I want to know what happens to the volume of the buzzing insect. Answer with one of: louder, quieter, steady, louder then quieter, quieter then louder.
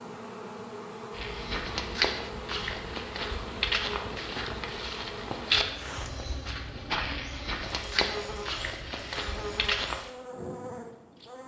steady.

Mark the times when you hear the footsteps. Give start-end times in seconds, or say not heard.
1.1-10.0.